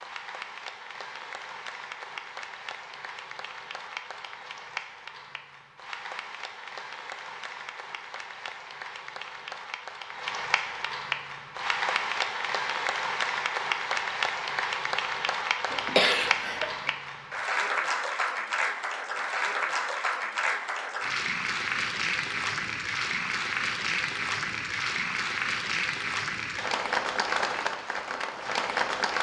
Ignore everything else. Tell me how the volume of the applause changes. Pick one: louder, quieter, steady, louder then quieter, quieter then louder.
louder.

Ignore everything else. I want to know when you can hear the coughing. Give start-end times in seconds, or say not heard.
15.7-16.9.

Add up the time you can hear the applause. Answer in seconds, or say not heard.
29 s.